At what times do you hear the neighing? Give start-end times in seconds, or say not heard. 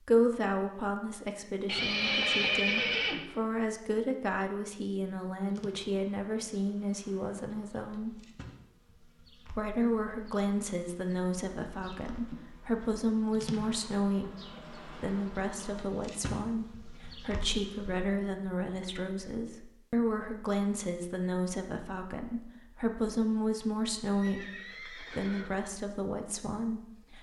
1.6-3.2, 24.1-25.5.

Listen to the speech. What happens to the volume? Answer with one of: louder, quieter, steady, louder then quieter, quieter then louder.
steady.